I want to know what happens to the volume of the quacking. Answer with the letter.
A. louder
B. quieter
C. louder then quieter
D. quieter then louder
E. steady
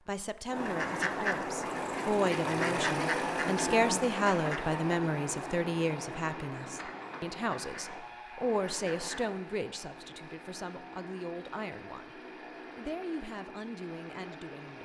B.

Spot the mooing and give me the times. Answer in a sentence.
The mooing can be heard from 2.6 to 4.0 s.